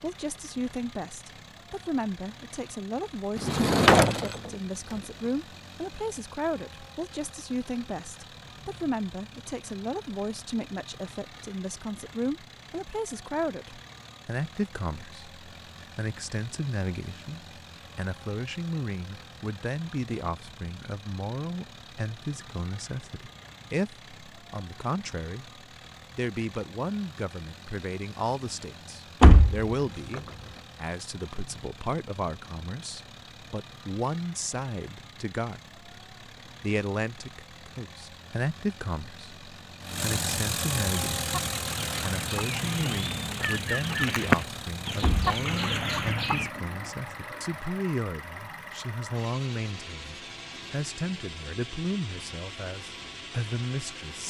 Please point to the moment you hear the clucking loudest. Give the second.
44 s.